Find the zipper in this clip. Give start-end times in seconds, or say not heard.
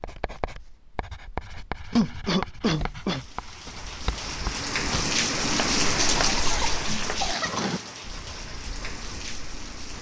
not heard.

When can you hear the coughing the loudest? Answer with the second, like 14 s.
2 s.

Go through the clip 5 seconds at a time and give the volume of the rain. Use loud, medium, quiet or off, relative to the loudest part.
medium, loud.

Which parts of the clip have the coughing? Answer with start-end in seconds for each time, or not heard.
1.9-3.2, 6.2-7.8.